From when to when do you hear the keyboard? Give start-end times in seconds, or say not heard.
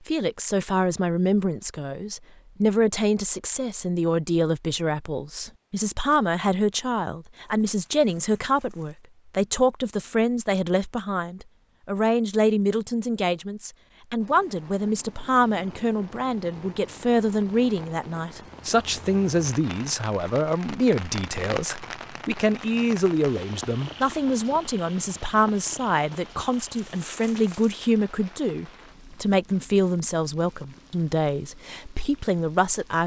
not heard.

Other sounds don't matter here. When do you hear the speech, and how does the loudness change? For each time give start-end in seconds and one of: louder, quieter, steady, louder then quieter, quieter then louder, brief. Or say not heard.
0.1-33.0 steady.